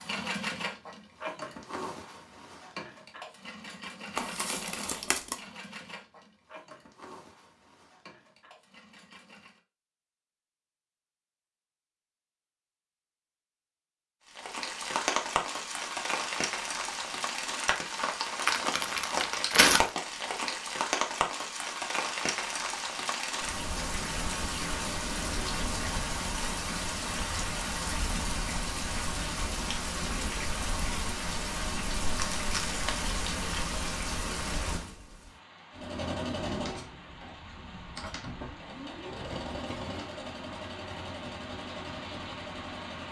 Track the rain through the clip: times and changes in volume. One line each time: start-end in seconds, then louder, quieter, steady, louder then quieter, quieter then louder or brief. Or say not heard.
14.2-43.0 quieter.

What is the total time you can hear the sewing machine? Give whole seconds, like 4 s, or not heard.
17 s.